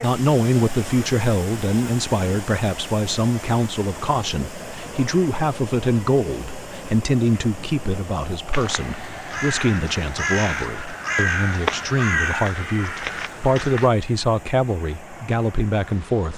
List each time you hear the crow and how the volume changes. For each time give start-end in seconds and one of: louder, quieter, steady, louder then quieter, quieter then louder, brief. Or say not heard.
8.5-13.9 louder then quieter.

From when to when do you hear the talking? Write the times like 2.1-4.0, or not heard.
0.0-16.3.